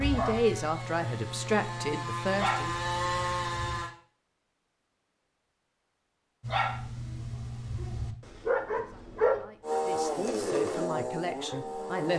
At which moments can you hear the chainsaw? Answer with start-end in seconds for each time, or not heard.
0.0-3.9, 9.6-12.1.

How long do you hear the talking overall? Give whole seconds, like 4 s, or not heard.
6 s.